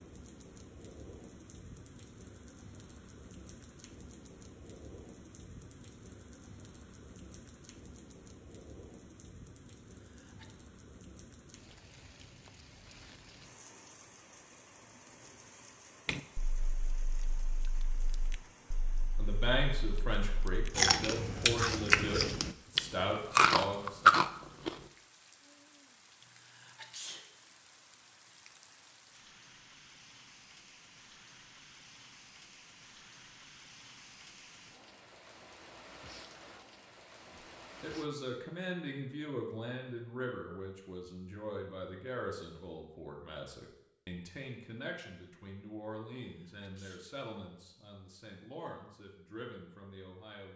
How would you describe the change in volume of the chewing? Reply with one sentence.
The loudness of the chewing goes down, then up.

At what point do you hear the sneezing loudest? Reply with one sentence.
The loudest moment of the sneezing is at 27 seconds.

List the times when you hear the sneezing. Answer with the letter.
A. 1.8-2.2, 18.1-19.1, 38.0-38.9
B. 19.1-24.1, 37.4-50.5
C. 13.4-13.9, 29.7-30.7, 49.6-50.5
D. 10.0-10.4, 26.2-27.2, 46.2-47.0
D.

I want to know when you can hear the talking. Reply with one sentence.
You can hear the talking from 19.1 to 24.1 s and from 37.4 to 50.5 s.